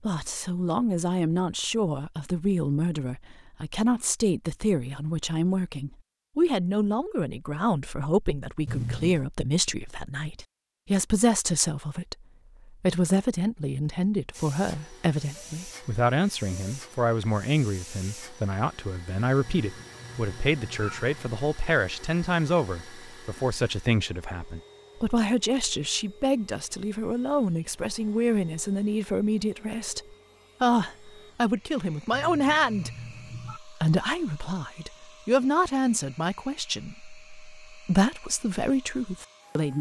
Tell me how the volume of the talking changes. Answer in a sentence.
The loudness of the talking stays about the same.